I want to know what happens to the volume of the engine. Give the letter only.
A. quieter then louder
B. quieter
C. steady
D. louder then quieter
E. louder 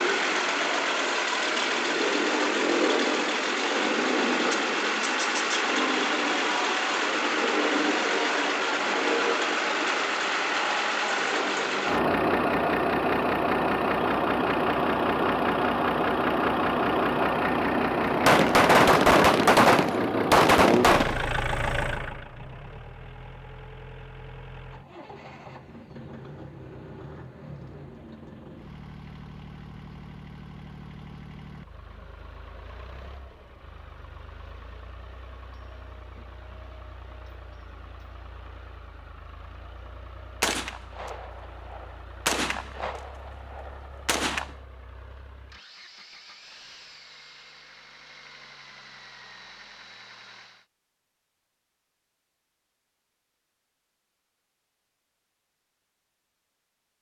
B.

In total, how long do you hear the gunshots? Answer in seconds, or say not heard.
7 s.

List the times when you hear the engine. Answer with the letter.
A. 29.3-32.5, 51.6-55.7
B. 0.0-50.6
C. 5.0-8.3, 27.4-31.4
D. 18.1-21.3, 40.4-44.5
B.